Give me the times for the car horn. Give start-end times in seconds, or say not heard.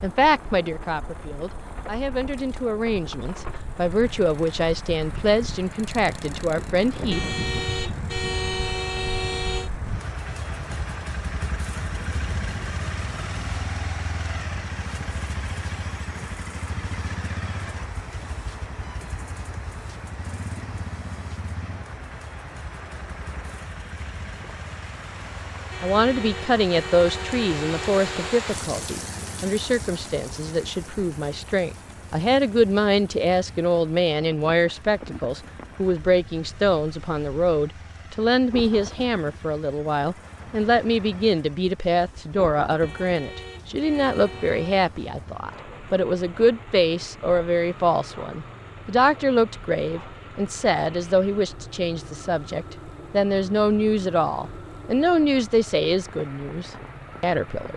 7.1-9.7, 25.7-28.4, 42.8-44.9.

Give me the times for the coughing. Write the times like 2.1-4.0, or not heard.
not heard.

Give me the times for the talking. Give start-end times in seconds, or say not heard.
0.0-7.2, 25.8-57.7.